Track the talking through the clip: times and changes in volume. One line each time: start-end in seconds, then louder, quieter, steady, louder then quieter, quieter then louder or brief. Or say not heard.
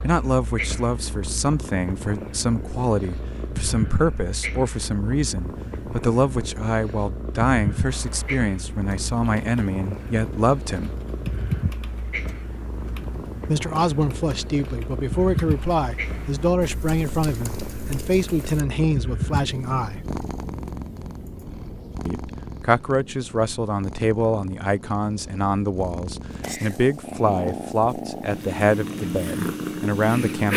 0.0-10.9 steady
13.4-20.0 steady
22.1-30.5 steady.